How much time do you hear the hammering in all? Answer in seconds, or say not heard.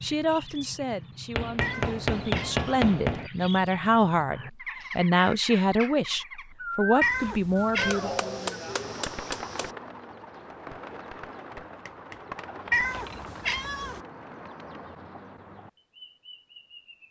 6 s.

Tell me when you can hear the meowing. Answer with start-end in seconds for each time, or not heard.
1.6-2.9, 7.0-8.0, 12.7-14.0.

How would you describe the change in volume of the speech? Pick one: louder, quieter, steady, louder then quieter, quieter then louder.
louder.